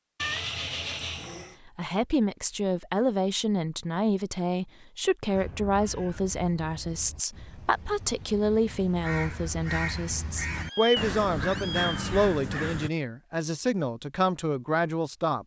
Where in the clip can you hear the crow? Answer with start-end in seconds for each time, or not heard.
5.3-12.9.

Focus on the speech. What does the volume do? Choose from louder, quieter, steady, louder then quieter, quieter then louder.
steady.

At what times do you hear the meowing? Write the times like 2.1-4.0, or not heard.
0.2-1.6, 10.6-11.9.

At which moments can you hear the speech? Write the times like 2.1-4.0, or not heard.
1.6-15.4.